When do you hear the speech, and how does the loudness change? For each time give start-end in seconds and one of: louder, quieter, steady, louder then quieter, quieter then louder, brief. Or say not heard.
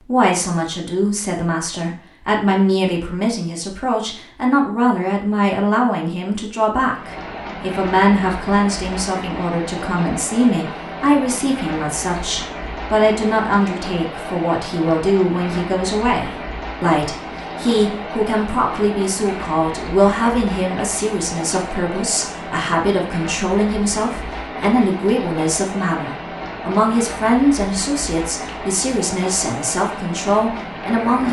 0.0-31.2 steady.